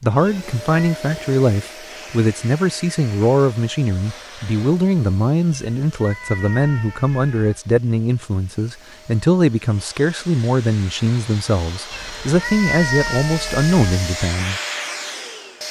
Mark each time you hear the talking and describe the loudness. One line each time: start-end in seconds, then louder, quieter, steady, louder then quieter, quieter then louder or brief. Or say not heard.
0.0-14.6 steady.